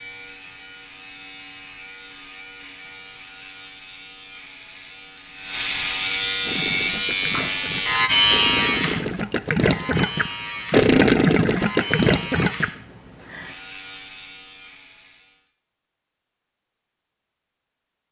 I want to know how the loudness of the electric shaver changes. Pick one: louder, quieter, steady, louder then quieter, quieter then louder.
louder then quieter.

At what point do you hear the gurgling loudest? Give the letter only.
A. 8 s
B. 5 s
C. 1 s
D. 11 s
D.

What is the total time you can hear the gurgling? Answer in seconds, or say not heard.
6 s.